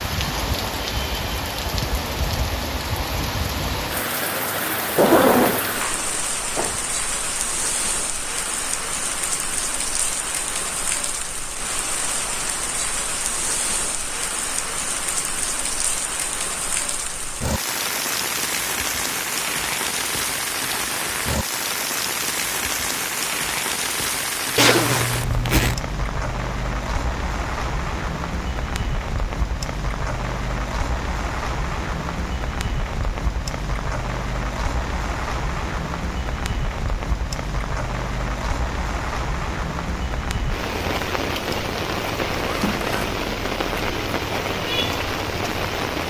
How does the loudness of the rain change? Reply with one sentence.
The loudness of the rain stays about the same.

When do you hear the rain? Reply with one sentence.
The rain can be heard from 0.0 to 46.0 s.